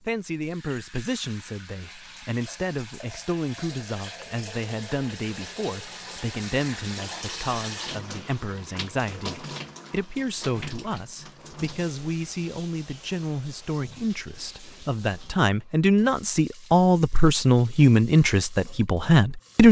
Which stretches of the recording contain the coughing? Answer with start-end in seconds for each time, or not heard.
not heard.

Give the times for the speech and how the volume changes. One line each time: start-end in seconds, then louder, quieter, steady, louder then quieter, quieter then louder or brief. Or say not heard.
0.0-19.6 louder.